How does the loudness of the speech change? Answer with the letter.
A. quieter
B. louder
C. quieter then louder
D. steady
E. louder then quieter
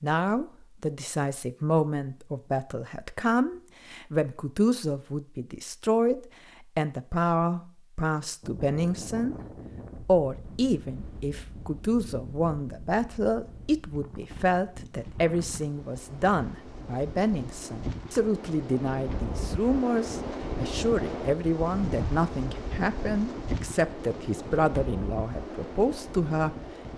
D.